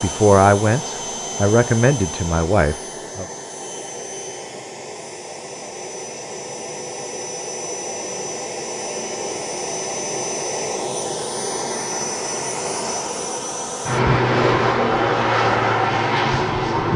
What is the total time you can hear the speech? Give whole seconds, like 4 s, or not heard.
3 s.